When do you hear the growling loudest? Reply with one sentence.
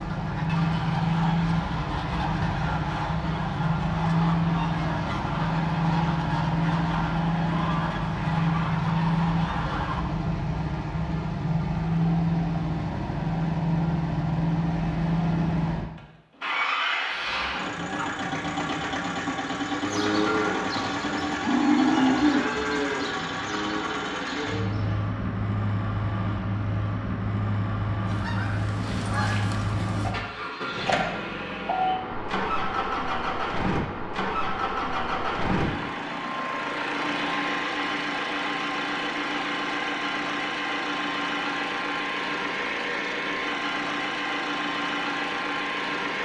The loudest moment of the growling is at 18 seconds.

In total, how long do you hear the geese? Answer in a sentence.
The geese can be heard for 12 seconds in total.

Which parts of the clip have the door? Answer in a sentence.
You can't hear the door here.